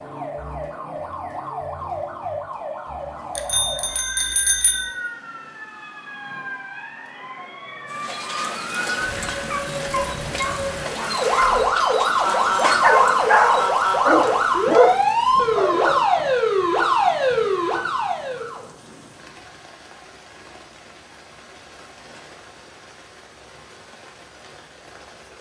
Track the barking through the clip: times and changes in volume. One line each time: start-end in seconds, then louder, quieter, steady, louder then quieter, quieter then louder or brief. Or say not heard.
8.0-16.3 louder.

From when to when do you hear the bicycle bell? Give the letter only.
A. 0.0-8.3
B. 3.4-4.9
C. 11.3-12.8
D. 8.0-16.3
B.